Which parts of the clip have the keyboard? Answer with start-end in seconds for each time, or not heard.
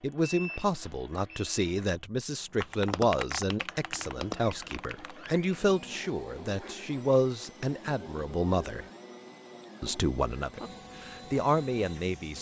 2.5-5.4.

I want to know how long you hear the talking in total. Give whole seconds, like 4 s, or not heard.
11 s.